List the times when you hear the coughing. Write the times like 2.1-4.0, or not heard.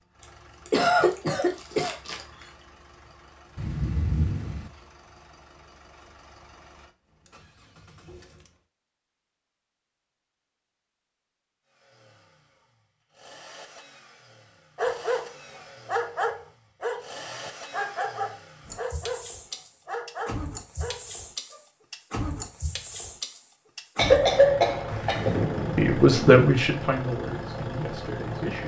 0.7-2.2, 23.9-25.5.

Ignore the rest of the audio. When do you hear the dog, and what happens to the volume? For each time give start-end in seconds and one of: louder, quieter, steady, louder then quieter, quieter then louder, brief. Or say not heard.
14.8-21.6 quieter.